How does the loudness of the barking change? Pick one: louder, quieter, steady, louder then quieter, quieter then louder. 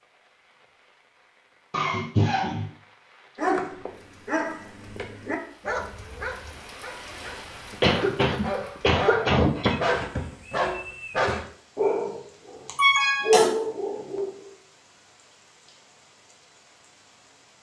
quieter then louder.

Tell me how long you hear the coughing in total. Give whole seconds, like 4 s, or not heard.
4 s.